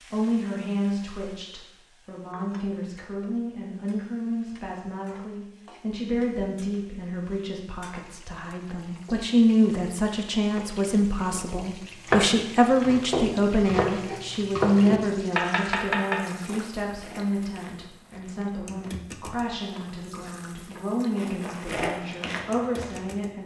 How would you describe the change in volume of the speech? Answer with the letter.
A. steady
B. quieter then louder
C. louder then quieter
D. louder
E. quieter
C.